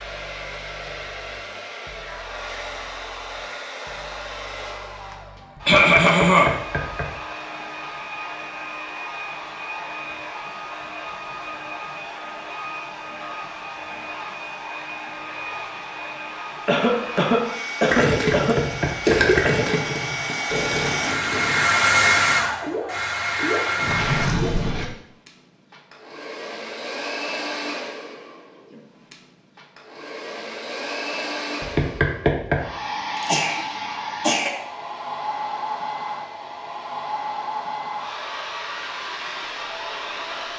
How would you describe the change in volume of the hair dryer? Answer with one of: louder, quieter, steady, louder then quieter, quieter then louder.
louder then quieter.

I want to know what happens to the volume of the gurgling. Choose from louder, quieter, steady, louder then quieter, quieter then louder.
quieter then louder.